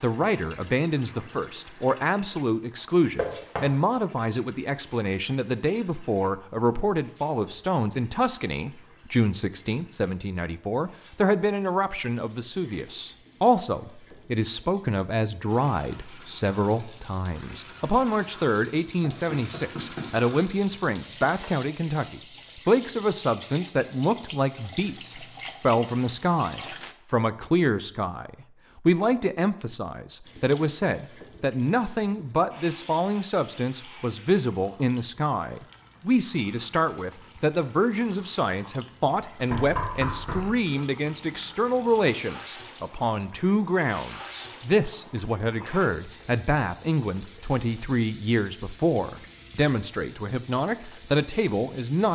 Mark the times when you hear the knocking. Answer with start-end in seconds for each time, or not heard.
3.1-3.6, 19.0-20.2, 39.5-40.5.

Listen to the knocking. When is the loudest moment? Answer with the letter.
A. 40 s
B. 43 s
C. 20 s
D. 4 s
A.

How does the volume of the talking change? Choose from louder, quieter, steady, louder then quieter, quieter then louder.
steady.